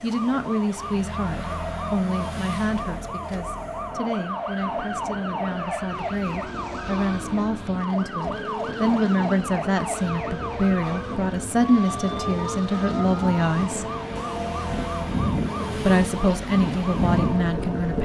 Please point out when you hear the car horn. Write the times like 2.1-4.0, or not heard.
14.2-15.2.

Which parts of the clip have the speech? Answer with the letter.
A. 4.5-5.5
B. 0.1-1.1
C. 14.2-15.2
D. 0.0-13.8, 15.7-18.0
D.